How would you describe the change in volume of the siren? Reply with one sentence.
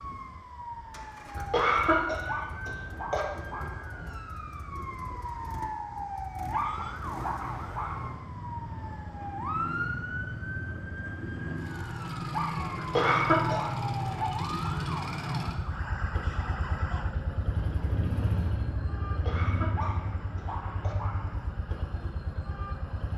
The loudness of the siren goes down.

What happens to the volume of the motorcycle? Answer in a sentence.
The loudness of the motorcycle goes up.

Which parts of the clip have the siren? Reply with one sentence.
The siren can be heard from 0.0 to 23.1 s.